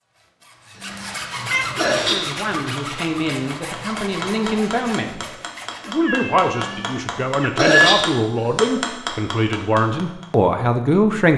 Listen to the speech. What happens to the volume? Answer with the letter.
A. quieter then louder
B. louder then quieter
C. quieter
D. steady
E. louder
E.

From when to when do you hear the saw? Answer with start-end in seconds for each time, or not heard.
0.0-6.0.